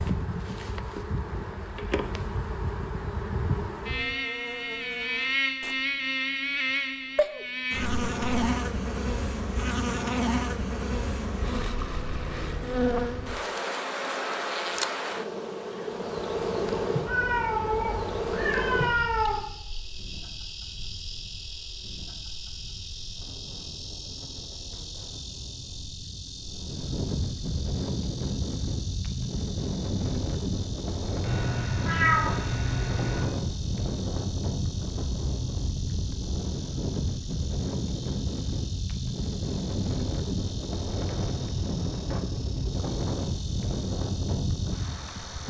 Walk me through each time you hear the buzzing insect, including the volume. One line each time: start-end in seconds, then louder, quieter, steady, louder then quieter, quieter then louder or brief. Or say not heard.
0.0-45.4 quieter.